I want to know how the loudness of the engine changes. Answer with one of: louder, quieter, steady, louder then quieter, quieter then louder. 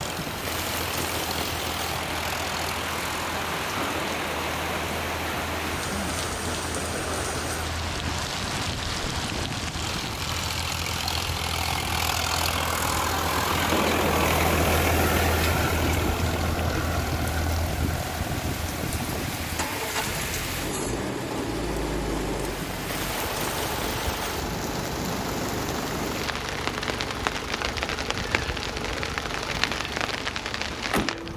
louder then quieter.